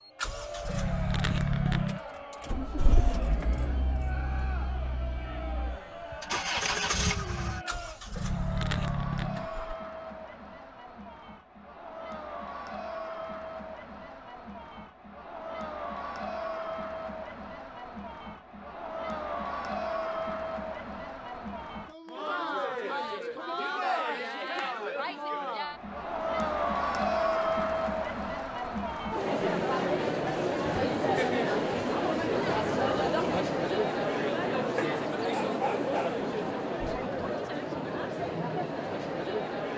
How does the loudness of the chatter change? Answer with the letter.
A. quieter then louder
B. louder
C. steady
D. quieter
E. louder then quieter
B.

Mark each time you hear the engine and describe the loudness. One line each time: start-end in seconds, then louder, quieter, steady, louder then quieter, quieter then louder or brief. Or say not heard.
0.1-9.8 quieter then louder.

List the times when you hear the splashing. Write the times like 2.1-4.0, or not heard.
not heard.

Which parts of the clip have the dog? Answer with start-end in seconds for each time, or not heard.
34.8-36.2.